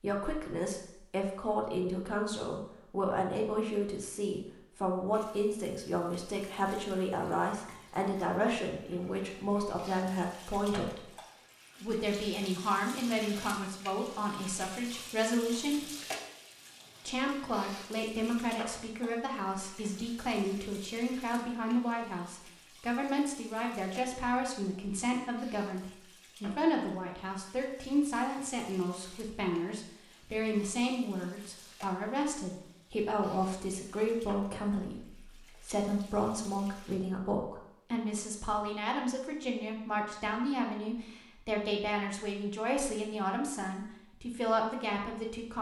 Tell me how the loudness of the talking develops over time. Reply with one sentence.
The loudness of the talking stays about the same.